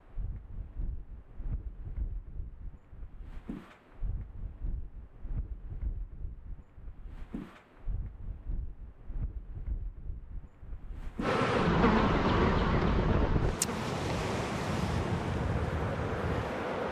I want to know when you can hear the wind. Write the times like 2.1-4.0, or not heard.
0.0-16.8.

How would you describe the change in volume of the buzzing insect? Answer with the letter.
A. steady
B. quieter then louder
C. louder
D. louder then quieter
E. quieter
E.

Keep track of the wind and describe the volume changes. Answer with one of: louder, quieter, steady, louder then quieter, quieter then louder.
louder.